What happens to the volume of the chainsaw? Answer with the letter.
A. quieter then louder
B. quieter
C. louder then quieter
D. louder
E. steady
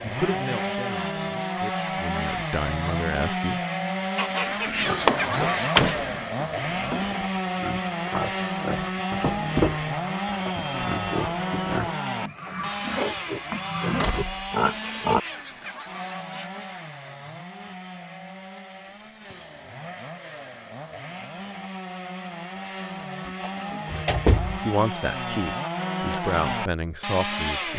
A.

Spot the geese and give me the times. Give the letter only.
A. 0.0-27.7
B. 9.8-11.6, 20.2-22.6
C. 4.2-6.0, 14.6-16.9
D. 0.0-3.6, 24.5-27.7
C.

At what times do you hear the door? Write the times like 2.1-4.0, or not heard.
5.0-6.0, 13.9-15.0, 23.2-24.6.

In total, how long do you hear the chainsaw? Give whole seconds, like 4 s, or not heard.
28 s.